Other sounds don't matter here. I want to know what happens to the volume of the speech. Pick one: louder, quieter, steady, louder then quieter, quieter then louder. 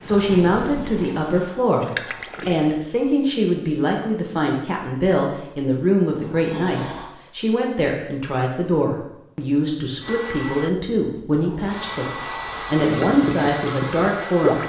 steady.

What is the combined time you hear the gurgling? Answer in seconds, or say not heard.
5 s.